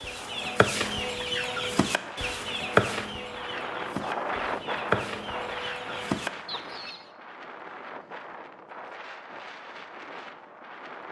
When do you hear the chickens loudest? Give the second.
3 s.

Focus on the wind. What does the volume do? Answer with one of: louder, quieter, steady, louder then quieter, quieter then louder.
louder then quieter.